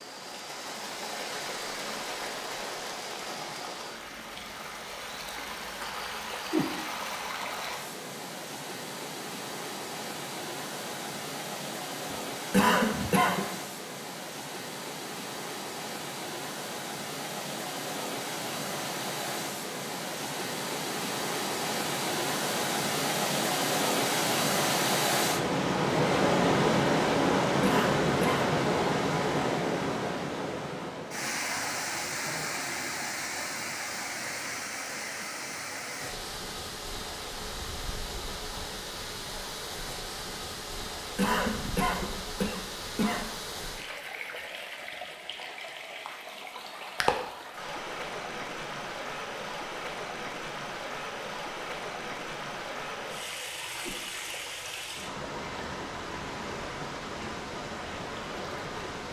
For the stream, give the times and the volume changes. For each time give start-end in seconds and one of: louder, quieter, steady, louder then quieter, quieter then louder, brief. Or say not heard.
0.0-59.0 louder then quieter.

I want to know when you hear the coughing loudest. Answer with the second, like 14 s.
13 s.